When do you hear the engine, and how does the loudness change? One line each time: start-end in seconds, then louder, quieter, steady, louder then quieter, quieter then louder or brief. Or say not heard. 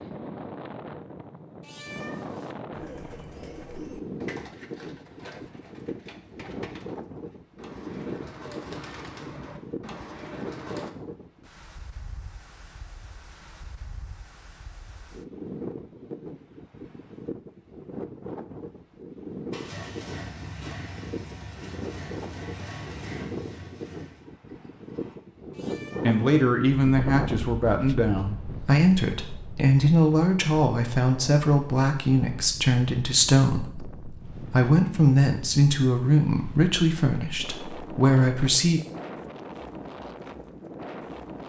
19.5-25.1 quieter.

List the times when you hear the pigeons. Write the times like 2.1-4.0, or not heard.
2.7-10.9.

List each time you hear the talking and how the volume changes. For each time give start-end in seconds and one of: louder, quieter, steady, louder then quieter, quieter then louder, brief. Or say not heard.
26.0-38.8 steady.